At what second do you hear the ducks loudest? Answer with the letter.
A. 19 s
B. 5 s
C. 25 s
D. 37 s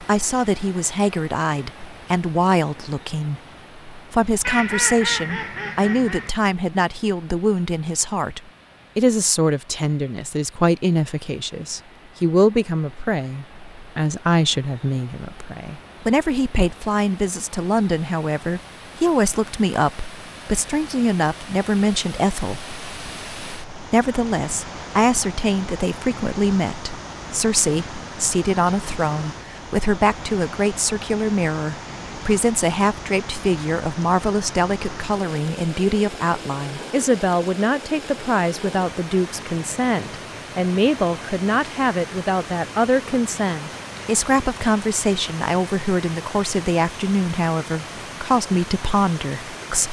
B.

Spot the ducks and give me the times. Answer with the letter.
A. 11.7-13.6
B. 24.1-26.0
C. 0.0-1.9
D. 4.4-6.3
D.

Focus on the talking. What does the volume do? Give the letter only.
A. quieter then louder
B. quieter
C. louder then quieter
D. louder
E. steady
E.